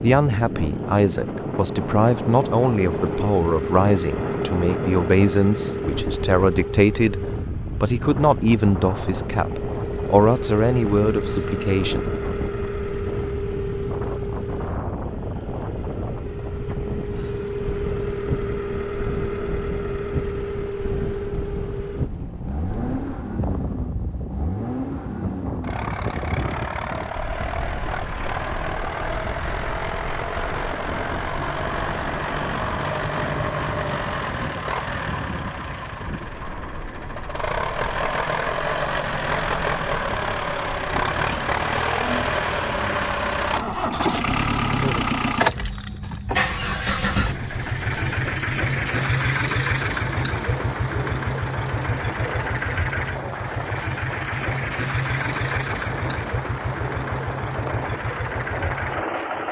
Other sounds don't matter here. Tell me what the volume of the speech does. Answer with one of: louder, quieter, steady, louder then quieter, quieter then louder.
steady.